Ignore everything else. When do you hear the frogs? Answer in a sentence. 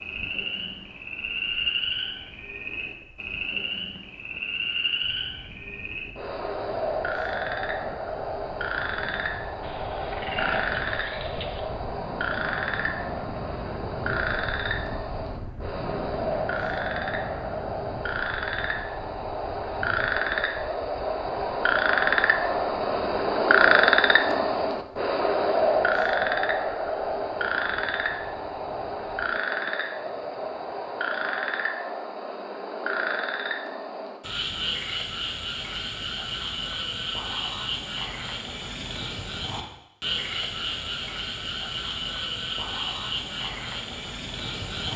You can hear the frogs from 0.0 to 44.9 s.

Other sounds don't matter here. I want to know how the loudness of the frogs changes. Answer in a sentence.
The volume of the frogs goes up, then down.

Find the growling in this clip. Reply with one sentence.
You can hear the growling from 9.6 to 11.6 s.